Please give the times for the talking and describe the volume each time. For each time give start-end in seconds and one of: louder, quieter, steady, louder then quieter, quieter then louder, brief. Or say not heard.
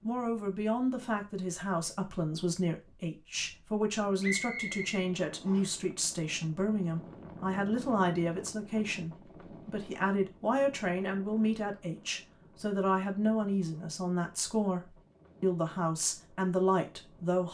0.0-17.5 steady.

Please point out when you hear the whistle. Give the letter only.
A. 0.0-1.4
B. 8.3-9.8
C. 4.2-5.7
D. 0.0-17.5
C.